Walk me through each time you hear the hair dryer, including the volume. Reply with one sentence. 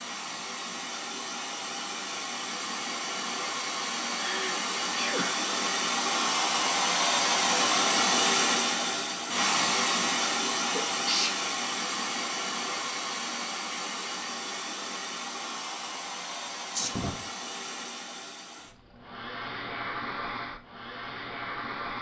You can hear the hair dryer from 0.0 to 21.9 s, getting louder then quieter.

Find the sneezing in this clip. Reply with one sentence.
The sneezing can be heard from 4.2 to 5.5 s, from 10.7 to 11.3 s and from 16.8 to 17.2 s.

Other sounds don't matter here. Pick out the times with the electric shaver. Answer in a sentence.
You can't hear the electric shaver here.